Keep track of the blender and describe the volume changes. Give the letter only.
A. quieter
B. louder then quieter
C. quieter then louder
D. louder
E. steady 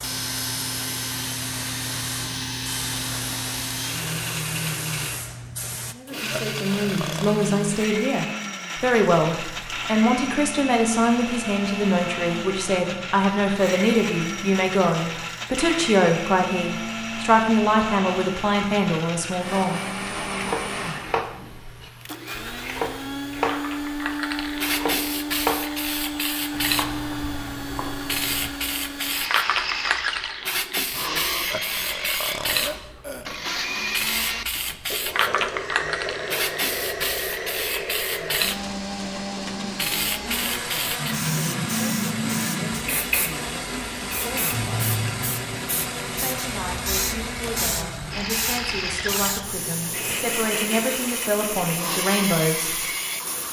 E.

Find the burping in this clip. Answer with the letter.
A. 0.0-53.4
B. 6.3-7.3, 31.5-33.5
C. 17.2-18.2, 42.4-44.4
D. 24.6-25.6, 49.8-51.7
B.